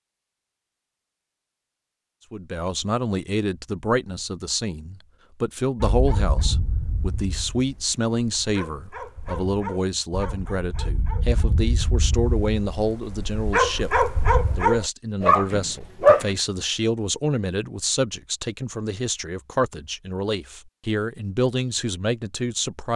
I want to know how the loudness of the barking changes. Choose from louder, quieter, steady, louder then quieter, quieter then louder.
louder.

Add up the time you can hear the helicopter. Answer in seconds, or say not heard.
not heard.